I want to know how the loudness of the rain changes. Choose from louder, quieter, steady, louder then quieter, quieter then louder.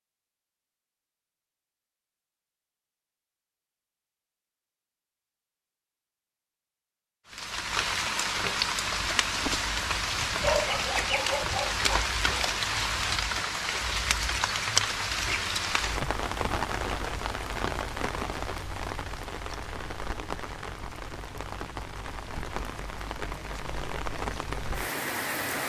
quieter.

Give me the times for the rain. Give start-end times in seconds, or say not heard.
7.3-25.6.